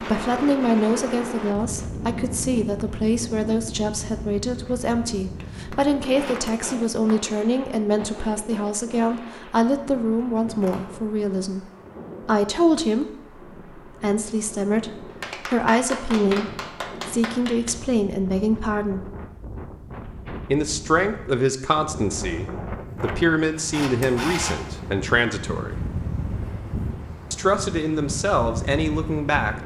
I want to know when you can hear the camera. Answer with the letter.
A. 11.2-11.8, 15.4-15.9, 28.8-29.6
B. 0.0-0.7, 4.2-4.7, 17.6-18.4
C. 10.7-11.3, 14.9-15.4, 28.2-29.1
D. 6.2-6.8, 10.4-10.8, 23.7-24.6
D.